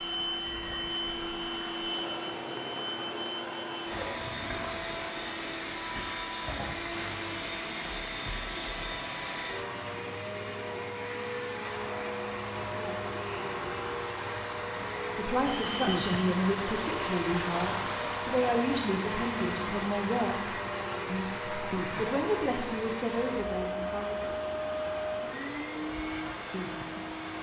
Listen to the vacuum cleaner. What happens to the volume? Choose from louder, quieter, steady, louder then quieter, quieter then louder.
steady.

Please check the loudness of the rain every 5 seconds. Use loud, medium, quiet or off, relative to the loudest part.
medium, medium, medium, loud, medium, medium.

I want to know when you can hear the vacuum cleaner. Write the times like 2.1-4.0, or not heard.
0.0-27.3.